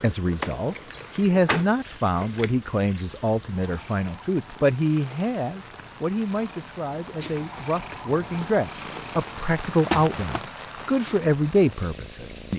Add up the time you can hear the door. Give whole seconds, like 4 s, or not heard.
2 s.